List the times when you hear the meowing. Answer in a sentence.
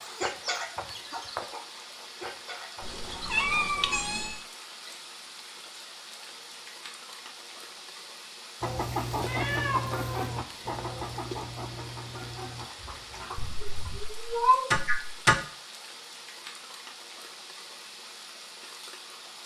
You can hear the meowing from 2.8 to 4.3 s, from 9.2 to 11.4 s and from 13.4 to 15.3 s.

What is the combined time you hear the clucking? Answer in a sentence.
The clucking can be heard for 9 seconds in total.